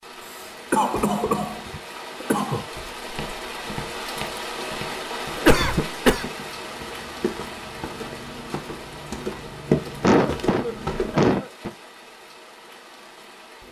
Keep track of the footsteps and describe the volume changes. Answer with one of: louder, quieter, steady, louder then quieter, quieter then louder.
louder.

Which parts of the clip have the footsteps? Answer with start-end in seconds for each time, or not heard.
2.7-11.3.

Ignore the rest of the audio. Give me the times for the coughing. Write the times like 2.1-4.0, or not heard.
0.7-2.6, 5.3-6.2, 10.0-11.7.